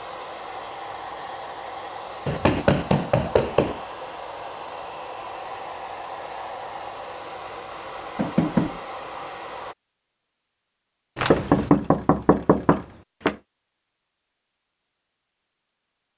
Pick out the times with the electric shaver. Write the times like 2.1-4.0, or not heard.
not heard.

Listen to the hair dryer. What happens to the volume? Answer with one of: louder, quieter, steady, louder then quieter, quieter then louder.
steady.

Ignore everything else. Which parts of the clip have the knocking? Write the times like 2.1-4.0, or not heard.
2.2-3.8, 7.7-8.8, 11.2-13.3.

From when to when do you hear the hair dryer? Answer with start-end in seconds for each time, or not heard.
0.0-9.8.